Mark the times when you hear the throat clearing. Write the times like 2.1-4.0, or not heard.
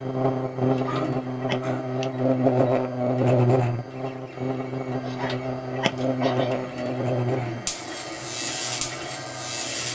0.8-1.9, 6.2-7.8.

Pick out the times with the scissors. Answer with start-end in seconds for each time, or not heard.
0.7-2.1, 5.0-6.2.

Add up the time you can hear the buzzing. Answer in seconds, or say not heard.
10 s.